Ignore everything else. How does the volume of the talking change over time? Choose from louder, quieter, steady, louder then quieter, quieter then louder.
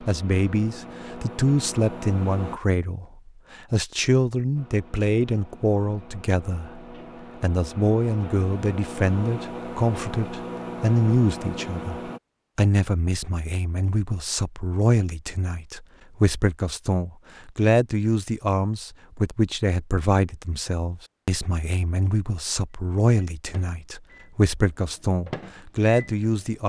steady.